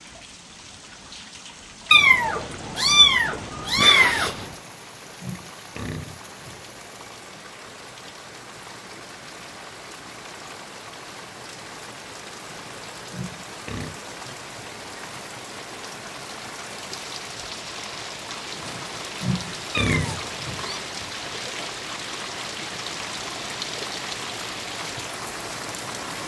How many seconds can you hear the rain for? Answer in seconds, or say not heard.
26 s.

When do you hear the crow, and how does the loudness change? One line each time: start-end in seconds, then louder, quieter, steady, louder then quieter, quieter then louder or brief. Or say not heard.
not heard.